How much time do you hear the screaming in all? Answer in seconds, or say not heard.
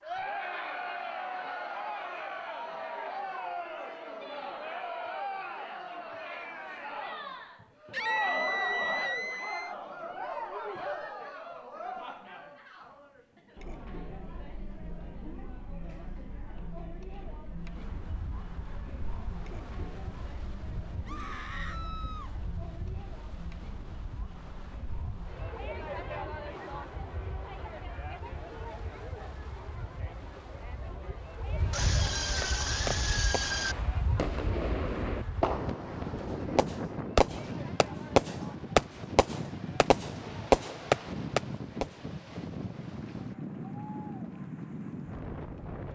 5 s.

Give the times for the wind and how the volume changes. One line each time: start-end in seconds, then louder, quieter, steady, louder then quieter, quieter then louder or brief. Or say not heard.
17.6-45.8 louder.